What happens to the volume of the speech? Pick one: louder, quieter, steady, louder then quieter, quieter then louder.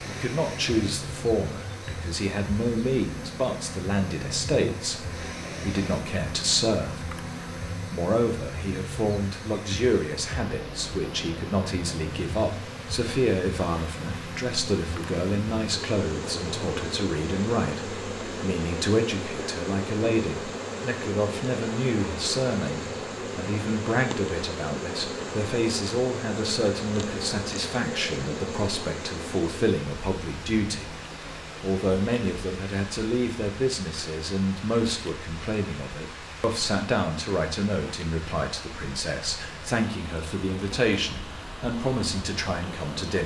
steady.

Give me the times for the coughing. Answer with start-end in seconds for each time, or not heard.
not heard.